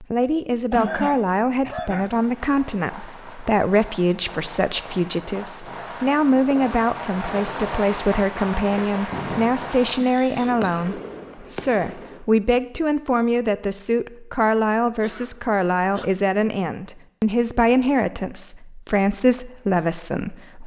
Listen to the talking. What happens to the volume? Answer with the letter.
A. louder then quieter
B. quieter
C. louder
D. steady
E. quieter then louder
D.